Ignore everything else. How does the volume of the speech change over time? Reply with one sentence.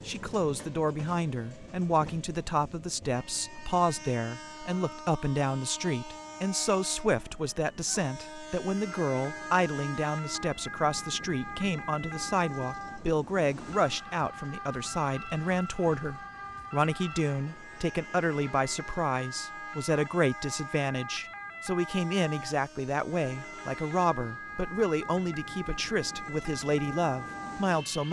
The volume of the speech stays about the same.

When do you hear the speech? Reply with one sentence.
The speech can be heard from 0.1 to 28.0 s.